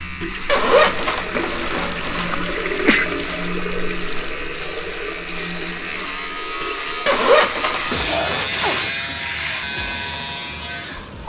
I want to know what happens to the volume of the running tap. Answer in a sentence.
The volume of the running tap goes down.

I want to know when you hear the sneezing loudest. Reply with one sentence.
The volume of the sneezing peaks at 3 seconds.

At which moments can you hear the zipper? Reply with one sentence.
The zipper can be heard from 0.5 to 2.4 s and from 7.0 to 8.9 s.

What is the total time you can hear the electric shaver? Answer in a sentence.
The electric shaver can be heard for 11 seconds in total.